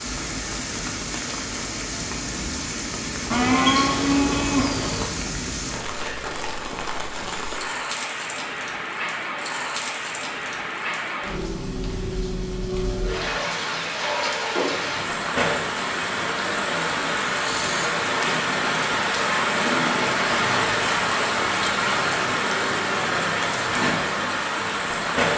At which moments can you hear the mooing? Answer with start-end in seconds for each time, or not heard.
3.3-5.2.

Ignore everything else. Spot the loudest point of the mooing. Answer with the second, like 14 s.
4 s.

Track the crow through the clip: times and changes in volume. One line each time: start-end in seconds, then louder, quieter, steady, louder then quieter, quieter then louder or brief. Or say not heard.
not heard.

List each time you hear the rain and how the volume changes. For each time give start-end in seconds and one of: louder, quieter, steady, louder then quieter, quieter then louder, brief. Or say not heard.
0.0-25.3 louder.